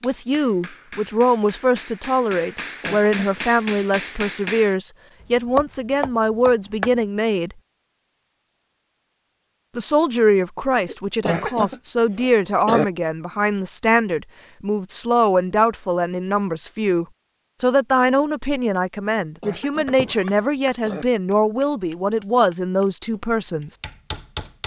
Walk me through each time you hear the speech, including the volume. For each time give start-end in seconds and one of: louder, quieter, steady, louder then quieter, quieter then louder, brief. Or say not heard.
0.0-7.5 steady
9.8-23.8 steady.